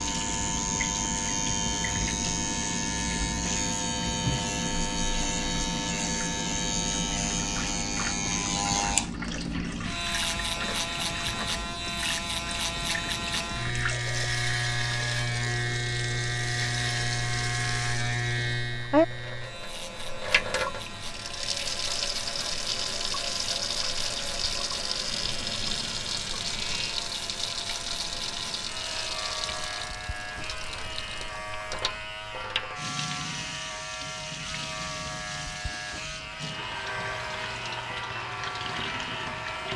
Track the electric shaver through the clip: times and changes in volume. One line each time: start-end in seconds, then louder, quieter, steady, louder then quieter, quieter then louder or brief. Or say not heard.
0.0-39.7 quieter.